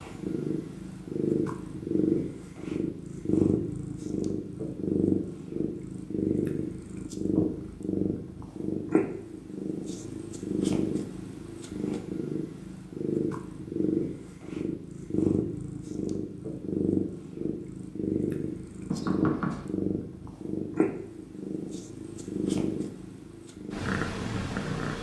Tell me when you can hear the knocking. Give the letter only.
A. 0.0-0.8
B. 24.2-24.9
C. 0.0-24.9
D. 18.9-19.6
D.